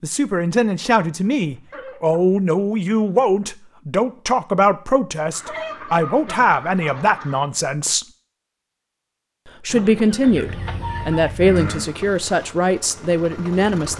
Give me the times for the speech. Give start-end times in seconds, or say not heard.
0.0-8.1, 9.6-13.9.